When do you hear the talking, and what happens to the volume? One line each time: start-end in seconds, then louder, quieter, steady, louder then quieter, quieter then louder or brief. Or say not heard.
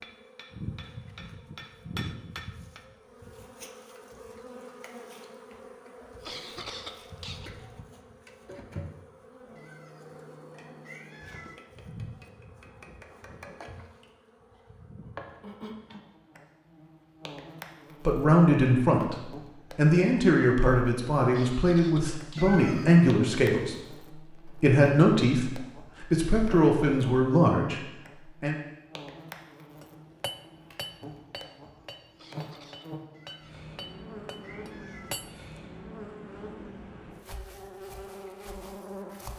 18.1-28.6 steady.